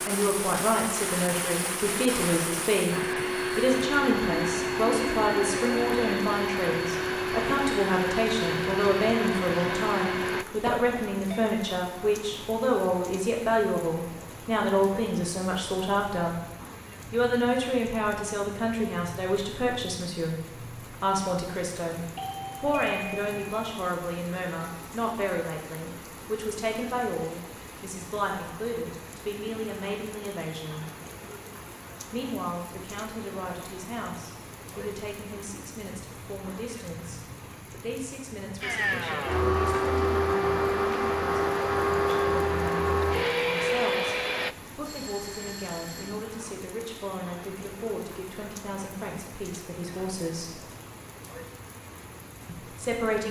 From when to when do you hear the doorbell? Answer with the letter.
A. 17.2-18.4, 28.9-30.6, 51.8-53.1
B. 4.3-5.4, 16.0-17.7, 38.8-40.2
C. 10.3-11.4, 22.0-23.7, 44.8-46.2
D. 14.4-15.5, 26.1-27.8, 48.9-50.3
C.